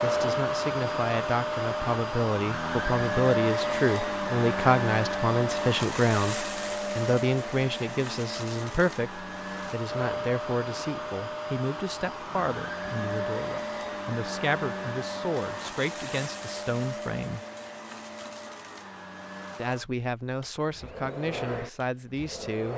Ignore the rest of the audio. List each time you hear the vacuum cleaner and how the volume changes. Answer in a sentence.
You can hear the vacuum cleaner from 0.0 to 22.7 s, getting quieter.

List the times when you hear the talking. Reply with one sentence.
You can hear the talking from 0.0 to 17.4 s and from 19.6 to 22.7 s.